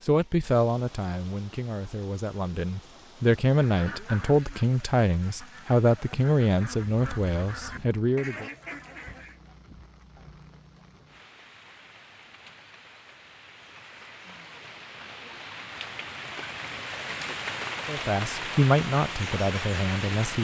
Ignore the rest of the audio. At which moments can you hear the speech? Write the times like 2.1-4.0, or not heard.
0.1-8.4, 17.9-20.4.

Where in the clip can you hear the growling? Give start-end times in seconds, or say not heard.
not heard.